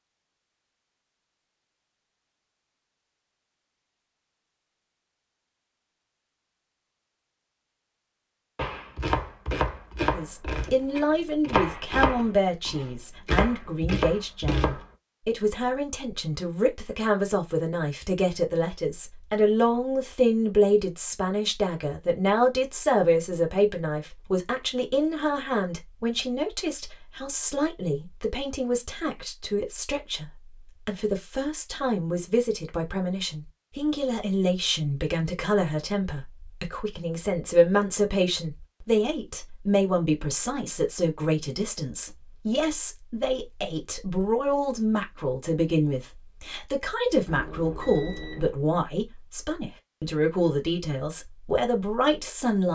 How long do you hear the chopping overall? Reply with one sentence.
You can hear the chopping for 6 seconds altogether.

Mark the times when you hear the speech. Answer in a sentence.
The speech can be heard from 10.1 to 52.7 s.